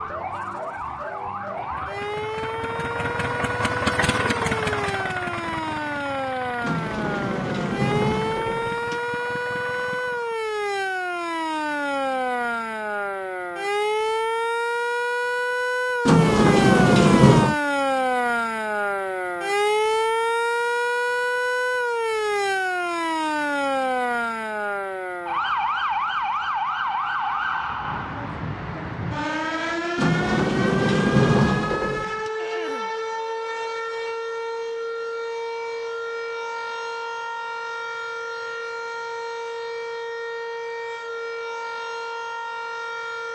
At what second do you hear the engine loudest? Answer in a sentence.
The volume of the engine peaks at 4 seconds.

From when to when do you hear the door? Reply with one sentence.
You can hear the door from 6.6 to 9.0 s, from 16.1 to 17.6 s and from 29.9 to 32.3 s.